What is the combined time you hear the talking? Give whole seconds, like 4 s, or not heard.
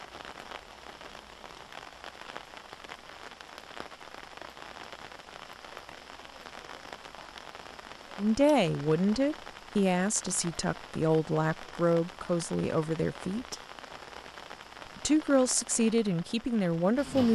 8 s.